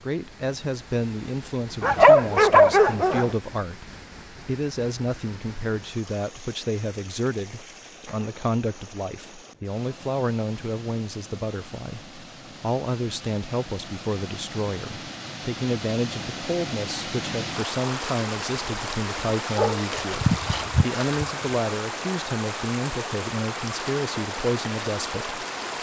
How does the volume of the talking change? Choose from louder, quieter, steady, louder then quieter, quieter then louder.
steady.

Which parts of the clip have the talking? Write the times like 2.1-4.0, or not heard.
0.0-25.4.